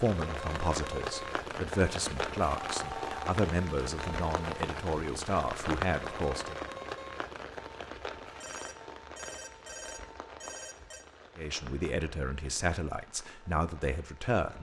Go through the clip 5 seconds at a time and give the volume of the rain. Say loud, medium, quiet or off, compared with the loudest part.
loud, loud, quiet.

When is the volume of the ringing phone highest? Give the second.
3 s.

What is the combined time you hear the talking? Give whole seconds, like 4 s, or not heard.
10 s.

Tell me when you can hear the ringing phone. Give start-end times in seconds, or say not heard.
2.7-3.2, 8.4-11.1.